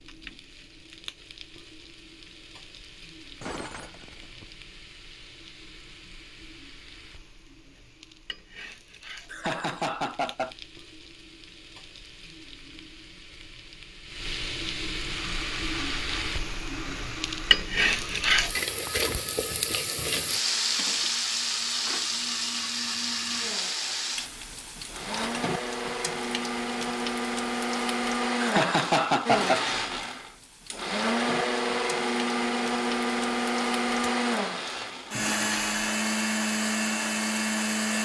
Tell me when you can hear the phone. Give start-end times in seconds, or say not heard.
not heard.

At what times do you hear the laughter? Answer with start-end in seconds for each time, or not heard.
9.3-10.5, 28.4-29.6.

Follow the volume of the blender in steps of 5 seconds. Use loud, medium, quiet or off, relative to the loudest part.
off, off, off, quiet, quiet, loud, loud, loud.